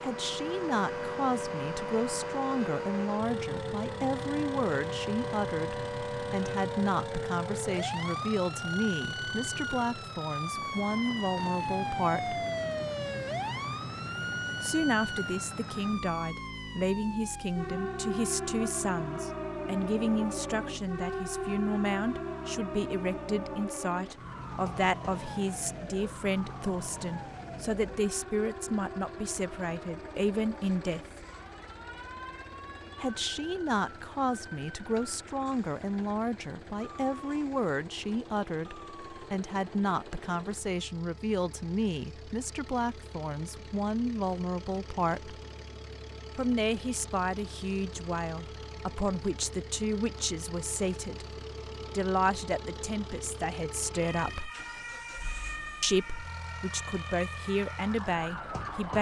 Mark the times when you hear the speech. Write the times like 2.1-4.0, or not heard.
0.0-12.4, 14.6-31.2, 33.0-45.4, 46.4-51.2, 51.9-54.5, 55.8-58.9.